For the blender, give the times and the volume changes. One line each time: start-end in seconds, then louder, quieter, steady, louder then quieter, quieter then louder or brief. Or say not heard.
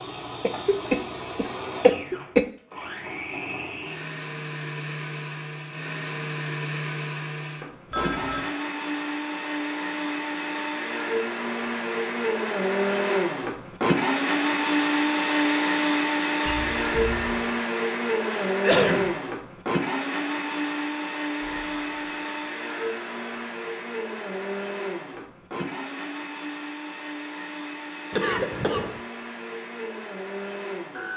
0.0-31.1 louder then quieter.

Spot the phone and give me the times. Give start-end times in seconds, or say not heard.
7.9-8.6, 16.4-17.6, 21.4-23.4.